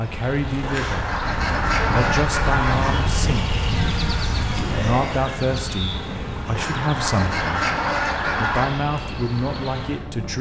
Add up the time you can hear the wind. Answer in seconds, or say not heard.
10 s.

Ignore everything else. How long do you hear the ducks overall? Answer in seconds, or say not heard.
5 s.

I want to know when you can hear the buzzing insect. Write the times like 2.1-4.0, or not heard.
0.0-10.3.